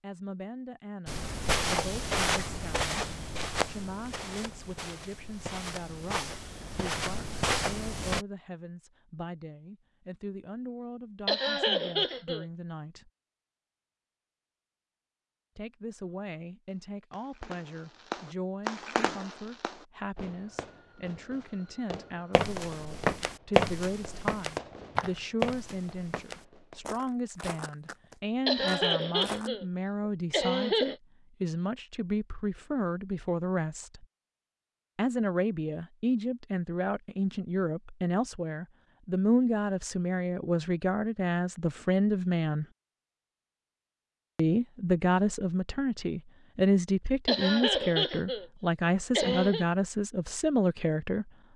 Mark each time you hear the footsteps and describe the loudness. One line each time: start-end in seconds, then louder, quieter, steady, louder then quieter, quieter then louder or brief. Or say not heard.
1.1-8.2 quieter then louder
22.4-29.5 quieter.